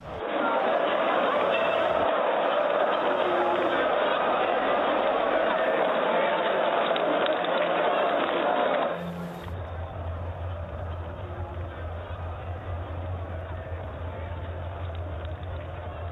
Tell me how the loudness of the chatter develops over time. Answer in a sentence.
The loudness of the chatter goes down.